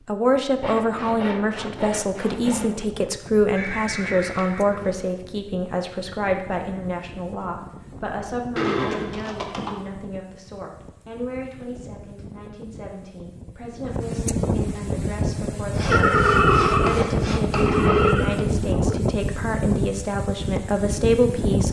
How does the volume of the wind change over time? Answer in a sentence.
The volume of the wind goes up.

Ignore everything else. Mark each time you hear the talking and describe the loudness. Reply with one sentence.
You can hear the talking from 0.1 to 21.6 s, getting quieter then louder.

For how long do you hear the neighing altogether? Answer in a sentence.
You can hear the neighing for 5 seconds altogether.